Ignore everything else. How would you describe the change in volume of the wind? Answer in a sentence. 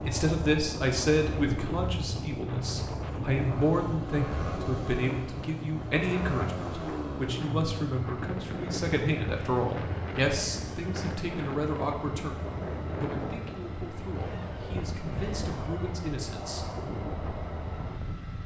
The loudness of the wind stays about the same.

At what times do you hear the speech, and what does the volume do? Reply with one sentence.
The speech can be heard from 0.0 to 16.6 s, getting quieter.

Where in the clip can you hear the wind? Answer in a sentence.
You can hear the wind from 0.0 to 18.4 s.